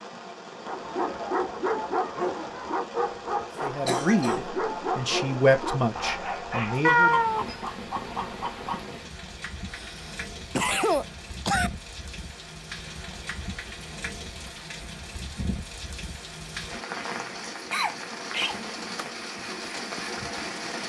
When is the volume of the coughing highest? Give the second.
11 s.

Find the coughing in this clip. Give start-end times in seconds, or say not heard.
3.9-4.5, 9.7-11.7, 17.7-19.1.